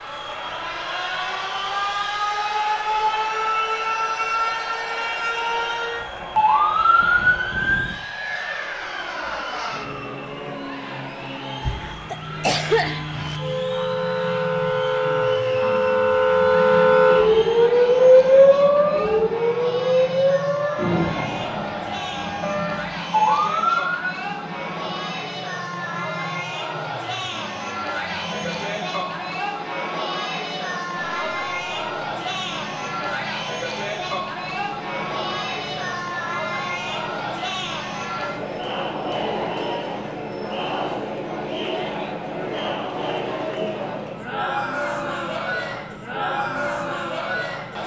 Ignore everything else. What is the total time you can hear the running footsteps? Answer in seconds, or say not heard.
not heard.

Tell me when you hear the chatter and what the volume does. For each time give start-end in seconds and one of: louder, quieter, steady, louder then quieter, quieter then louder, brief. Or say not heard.
0.0-47.8 louder.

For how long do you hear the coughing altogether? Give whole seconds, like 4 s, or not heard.
2 s.